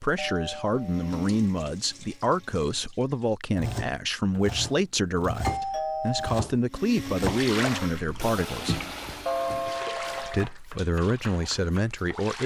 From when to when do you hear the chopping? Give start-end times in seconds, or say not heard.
3.5-12.0.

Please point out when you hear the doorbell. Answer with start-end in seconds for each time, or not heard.
0.1-1.1, 5.4-6.2, 9.2-10.5.